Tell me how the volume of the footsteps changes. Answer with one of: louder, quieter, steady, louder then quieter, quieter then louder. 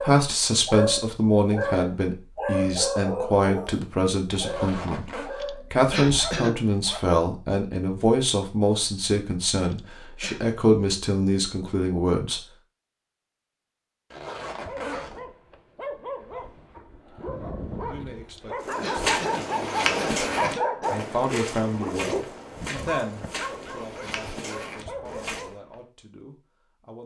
quieter.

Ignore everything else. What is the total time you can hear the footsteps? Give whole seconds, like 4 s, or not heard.
7 s.